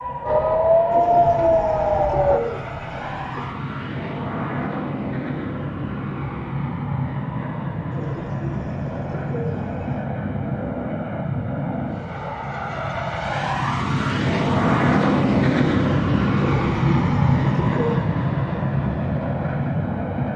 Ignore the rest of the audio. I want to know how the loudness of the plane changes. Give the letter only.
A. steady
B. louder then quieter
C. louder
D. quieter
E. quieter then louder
C.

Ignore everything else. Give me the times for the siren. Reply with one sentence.
You can hear the siren from 0.0 to 2.4 s.